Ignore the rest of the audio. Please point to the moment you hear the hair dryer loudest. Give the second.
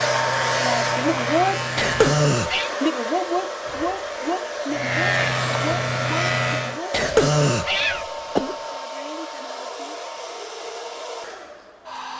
1 s.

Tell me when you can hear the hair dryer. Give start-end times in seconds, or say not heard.
0.0-12.1.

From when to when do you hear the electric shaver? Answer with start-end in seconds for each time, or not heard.
0.0-2.2, 4.7-6.8.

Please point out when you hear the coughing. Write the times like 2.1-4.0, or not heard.
1.8-2.7, 6.9-8.6.